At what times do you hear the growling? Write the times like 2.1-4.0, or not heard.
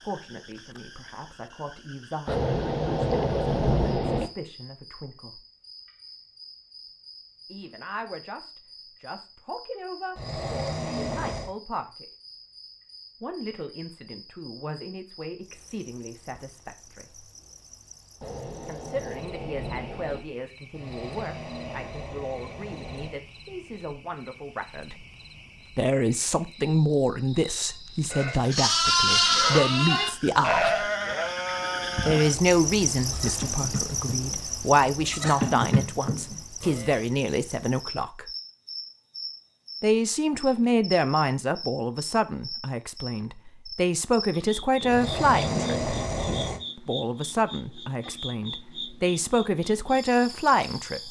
10.2-11.6, 20.7-23.2, 44.9-46.6.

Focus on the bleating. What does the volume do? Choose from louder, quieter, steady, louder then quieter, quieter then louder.
quieter then louder.